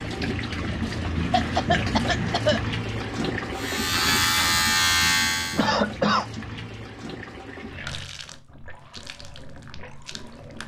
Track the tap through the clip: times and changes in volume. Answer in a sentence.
The tap can be heard from 0.0 to 10.6 s, getting quieter.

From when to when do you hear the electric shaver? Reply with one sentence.
You can hear the electric shaver from 3.5 to 5.7 s.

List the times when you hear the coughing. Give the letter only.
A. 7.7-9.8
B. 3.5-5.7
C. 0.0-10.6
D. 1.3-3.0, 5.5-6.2
D.